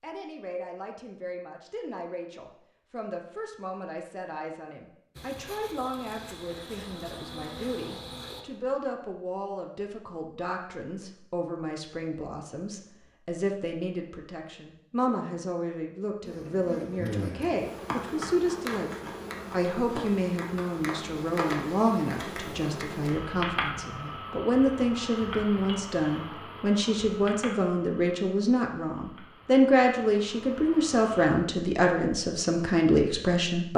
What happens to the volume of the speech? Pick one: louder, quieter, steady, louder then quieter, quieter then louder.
louder.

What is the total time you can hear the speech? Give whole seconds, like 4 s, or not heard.
34 s.